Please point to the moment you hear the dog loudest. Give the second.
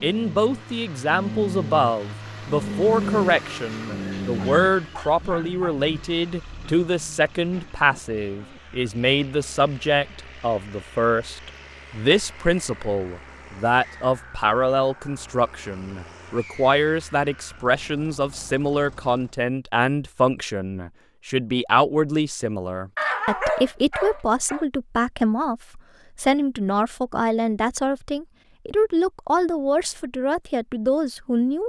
23 s.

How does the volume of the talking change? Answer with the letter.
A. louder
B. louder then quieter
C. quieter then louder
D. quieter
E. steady
E.